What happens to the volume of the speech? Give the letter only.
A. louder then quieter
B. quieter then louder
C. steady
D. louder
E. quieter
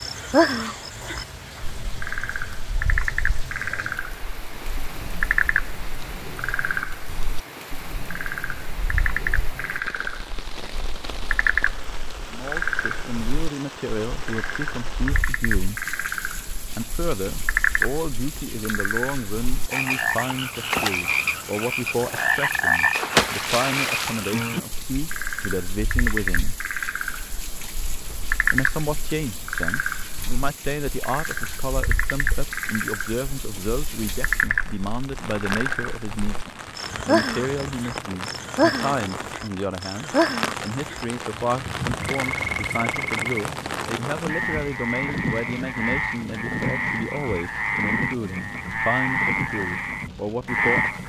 C.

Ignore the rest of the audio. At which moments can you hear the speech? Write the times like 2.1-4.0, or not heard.
12.3-15.8, 16.7-26.6, 28.5-51.0.